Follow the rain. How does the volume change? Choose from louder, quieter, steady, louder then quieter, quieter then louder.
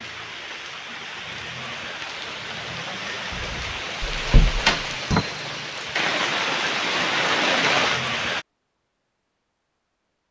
louder.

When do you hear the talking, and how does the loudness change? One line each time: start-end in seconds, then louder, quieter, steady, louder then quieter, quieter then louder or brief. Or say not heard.
not heard.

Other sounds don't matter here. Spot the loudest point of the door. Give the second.
5 s.